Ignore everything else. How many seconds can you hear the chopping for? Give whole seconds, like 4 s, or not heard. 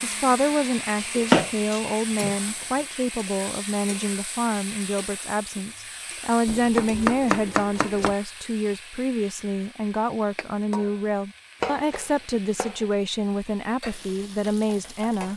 4 s.